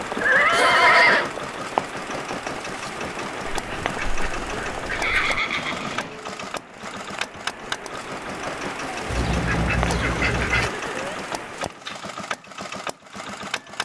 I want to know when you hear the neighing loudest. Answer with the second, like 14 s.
1 s.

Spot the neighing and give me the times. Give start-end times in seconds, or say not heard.
0.2-1.3, 4.9-6.2, 9.8-11.2.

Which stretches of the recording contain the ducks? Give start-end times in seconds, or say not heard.
3.5-5.4, 9.1-10.7.